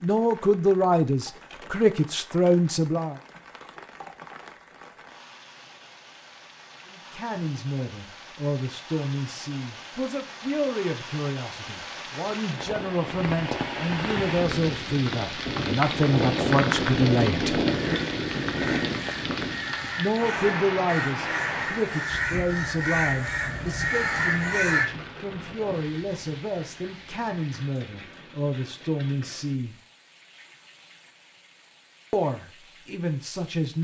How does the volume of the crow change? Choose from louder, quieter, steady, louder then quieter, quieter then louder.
louder.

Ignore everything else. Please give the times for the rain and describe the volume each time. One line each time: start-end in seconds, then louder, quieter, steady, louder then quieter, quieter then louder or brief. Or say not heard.
0.0-33.7 louder then quieter.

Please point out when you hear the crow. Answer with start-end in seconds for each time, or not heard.
17.6-24.9.